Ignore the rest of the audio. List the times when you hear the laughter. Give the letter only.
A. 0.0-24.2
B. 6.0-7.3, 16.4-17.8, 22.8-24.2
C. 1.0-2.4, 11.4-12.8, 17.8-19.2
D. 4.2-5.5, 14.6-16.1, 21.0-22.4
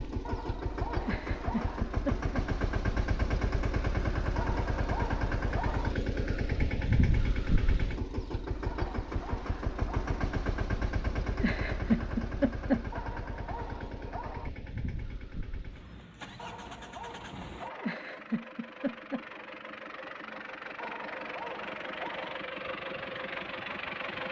C.